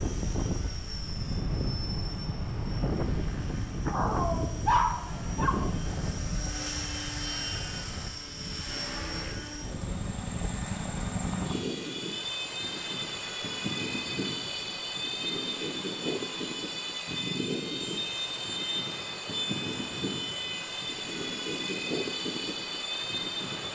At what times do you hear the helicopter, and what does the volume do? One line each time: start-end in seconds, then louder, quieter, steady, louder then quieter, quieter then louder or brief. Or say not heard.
0.0-23.7 louder.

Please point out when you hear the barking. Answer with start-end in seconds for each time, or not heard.
3.9-5.7.